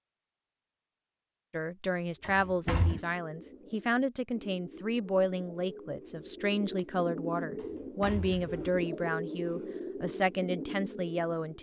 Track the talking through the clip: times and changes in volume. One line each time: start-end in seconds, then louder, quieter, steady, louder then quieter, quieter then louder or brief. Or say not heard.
1.5-11.5 steady.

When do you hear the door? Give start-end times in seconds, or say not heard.
2.2-3.0, 7.5-8.6.